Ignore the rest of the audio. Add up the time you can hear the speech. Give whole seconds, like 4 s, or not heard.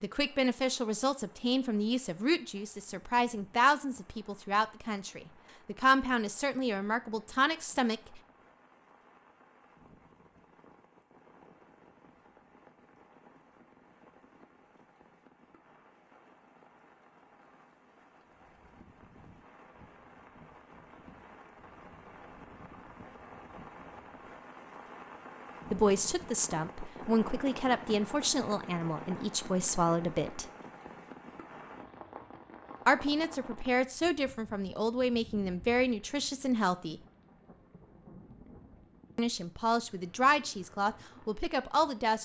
20 s.